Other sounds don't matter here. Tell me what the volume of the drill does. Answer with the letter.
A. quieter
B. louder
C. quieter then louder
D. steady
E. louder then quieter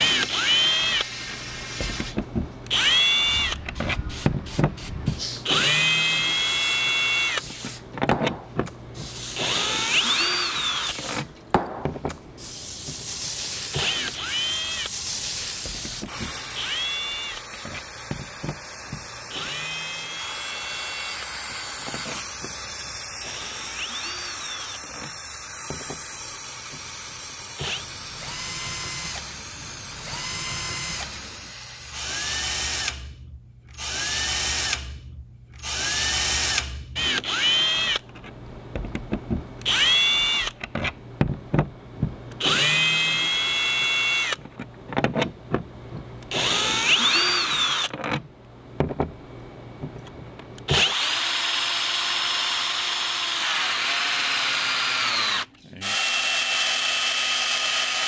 C.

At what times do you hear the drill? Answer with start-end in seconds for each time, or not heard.
0.0-58.0.